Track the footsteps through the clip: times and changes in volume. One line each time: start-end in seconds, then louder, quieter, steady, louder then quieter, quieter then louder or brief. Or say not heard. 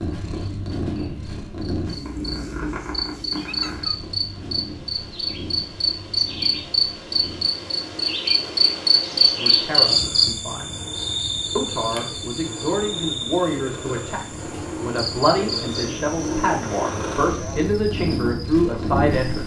not heard.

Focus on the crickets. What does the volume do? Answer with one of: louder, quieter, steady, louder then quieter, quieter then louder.
louder then quieter.